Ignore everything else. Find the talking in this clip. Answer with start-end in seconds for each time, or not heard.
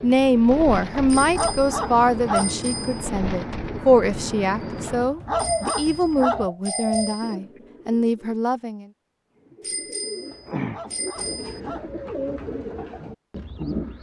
0.0-8.8.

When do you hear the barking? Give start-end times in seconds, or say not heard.
1.1-2.5, 4.9-6.5, 10.3-11.9.